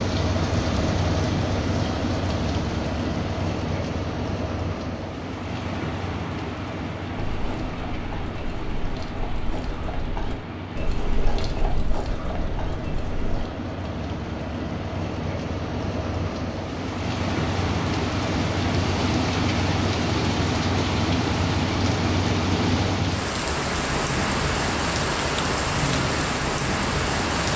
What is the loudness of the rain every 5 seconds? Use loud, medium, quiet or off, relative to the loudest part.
loud, medium, medium, loud, loud, loud.